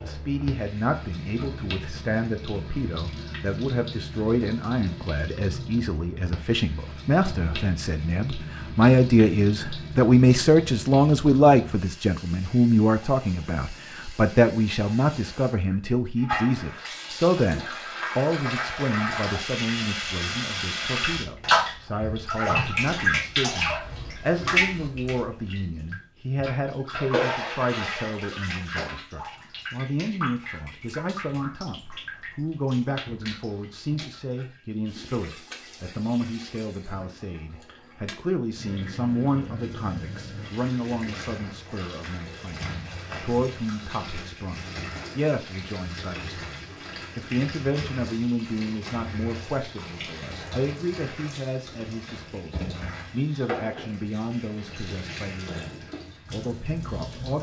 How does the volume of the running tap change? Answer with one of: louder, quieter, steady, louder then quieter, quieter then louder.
louder then quieter.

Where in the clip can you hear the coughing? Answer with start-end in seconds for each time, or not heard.
not heard.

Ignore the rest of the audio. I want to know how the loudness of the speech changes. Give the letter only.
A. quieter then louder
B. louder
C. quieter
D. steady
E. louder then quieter
C.